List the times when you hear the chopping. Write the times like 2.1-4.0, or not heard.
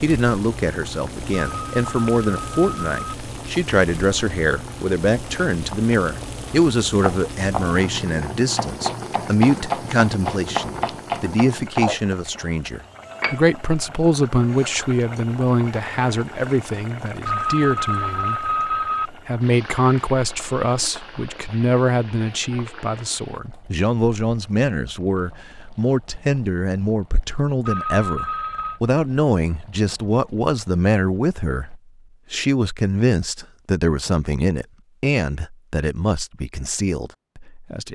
6.9-11.9.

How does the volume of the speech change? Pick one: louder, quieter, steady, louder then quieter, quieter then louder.
steady.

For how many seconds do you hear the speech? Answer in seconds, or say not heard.
37 s.